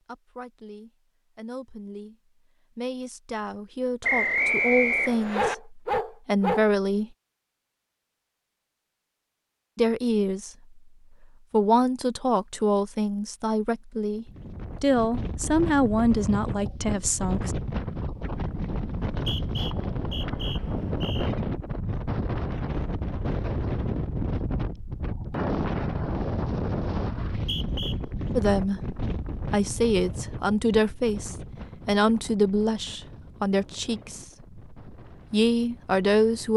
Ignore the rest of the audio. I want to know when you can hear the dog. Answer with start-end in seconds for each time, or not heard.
5.3-6.7.